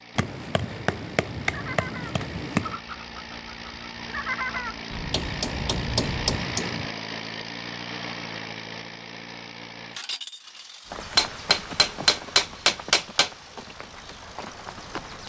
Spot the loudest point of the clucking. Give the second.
4 s.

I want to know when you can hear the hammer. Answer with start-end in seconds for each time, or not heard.
0.1-2.8, 5.1-6.9, 11.2-13.3.